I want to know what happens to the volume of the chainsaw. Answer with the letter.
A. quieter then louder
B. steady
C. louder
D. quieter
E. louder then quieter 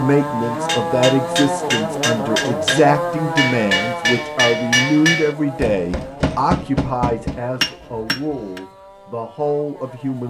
D.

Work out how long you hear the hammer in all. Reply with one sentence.
You can hear the hammer for 8 seconds altogether.